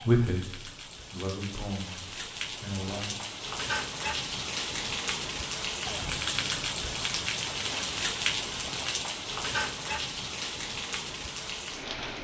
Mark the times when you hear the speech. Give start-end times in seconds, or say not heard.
0.0-3.1.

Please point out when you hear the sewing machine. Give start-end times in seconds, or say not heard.
not heard.